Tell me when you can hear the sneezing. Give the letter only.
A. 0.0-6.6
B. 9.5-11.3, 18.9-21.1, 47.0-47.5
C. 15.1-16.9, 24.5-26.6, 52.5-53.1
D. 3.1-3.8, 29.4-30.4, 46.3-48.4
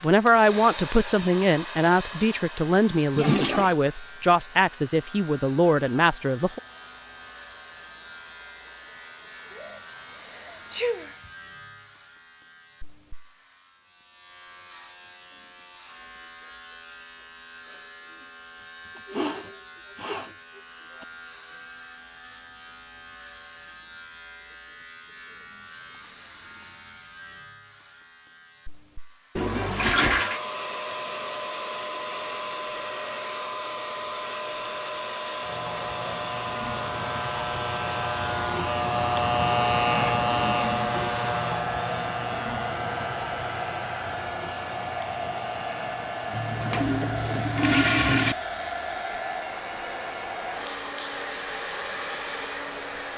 B.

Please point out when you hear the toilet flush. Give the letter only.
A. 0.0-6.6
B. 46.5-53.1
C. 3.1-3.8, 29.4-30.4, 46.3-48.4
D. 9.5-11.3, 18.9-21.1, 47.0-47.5
C.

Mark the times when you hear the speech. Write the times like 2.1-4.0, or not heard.
0.0-6.6.